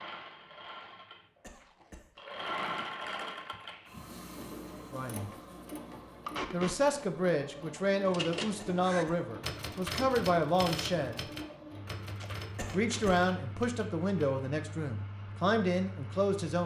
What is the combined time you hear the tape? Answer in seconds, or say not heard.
3 s.